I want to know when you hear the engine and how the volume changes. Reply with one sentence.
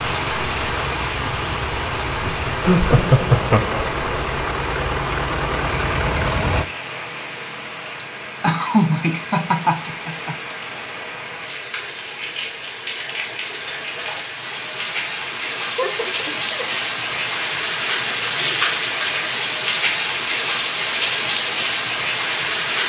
The engine can be heard from 0.0 to 6.7 s, getting louder.